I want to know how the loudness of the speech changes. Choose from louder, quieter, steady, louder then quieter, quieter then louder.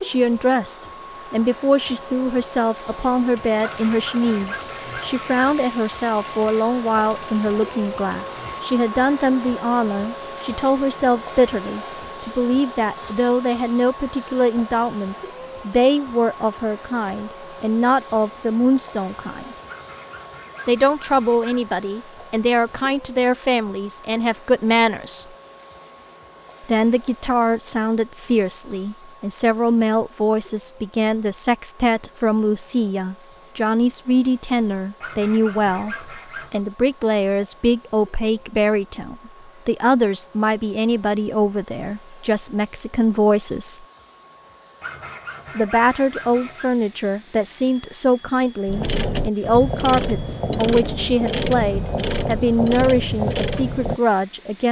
steady.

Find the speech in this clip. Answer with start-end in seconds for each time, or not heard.
0.0-19.6, 20.6-25.2, 26.6-43.9, 45.5-54.6.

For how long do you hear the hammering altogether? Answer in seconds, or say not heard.
not heard.